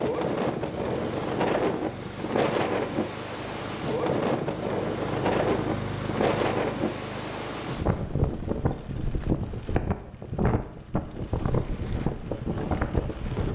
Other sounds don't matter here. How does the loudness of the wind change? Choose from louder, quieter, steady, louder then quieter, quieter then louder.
steady.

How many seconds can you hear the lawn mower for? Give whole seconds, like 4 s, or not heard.
8 s.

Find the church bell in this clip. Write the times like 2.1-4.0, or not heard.
not heard.